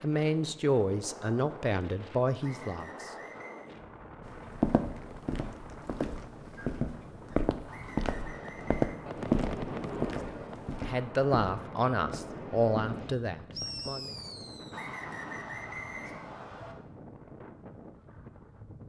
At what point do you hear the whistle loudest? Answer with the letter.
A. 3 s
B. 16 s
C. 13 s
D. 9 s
B.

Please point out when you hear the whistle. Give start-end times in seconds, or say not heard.
2.4-3.7, 7.7-9.1, 14.7-16.8.